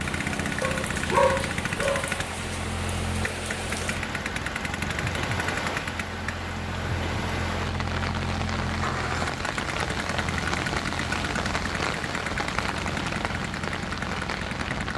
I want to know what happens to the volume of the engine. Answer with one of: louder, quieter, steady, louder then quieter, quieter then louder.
steady.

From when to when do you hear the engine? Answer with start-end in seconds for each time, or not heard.
0.0-14.9.